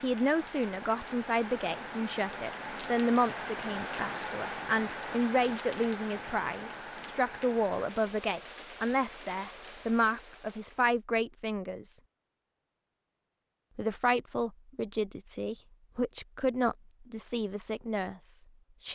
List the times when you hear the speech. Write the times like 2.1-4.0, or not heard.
0.0-12.0, 13.8-18.9.